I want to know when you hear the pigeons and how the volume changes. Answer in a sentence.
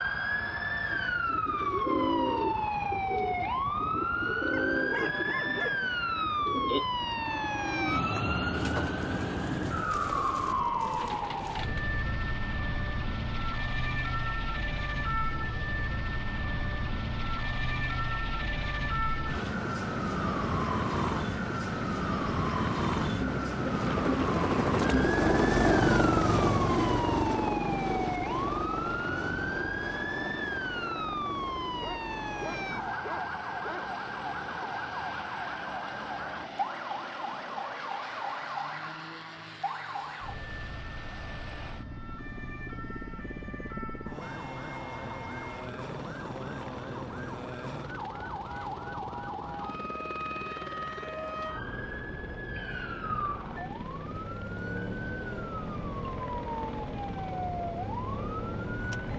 You can hear the pigeons from 0.4 to 11.9 s, getting quieter.